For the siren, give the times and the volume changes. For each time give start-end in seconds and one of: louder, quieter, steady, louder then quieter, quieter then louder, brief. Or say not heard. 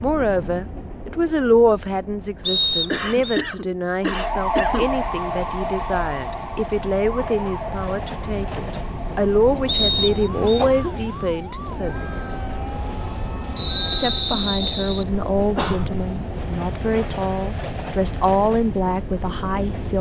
4.0-14.2 quieter.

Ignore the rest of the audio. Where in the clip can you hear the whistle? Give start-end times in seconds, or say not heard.
2.5-3.4, 9.7-10.7, 13.6-15.1.